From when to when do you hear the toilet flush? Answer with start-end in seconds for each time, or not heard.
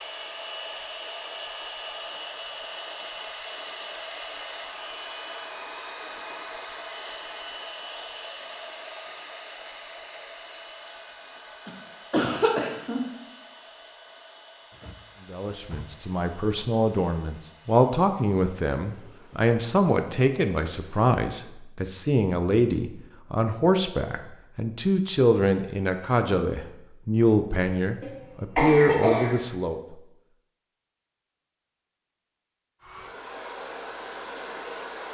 not heard.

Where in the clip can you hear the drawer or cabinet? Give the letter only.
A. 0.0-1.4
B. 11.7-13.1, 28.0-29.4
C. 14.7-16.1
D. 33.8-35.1
C.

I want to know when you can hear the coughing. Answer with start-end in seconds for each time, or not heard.
11.7-13.1, 28.0-29.4.